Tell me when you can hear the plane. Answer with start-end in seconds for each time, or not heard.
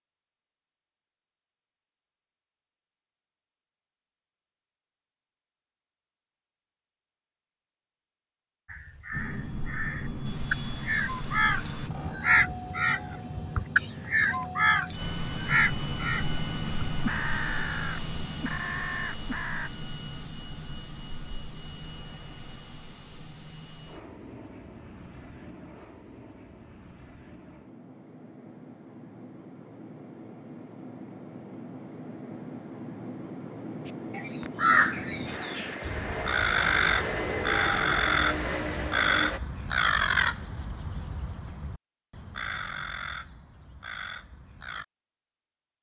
9.1-39.4.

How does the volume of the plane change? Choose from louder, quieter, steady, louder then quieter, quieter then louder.
quieter then louder.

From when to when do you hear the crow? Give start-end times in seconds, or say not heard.
8.7-19.7, 33.9-44.9.